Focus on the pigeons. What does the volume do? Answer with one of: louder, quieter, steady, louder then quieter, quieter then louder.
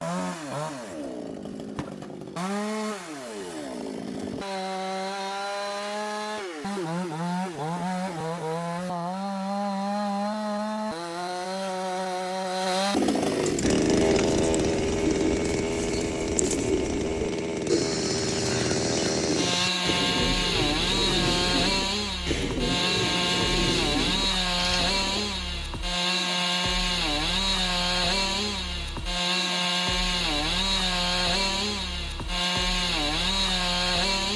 steady.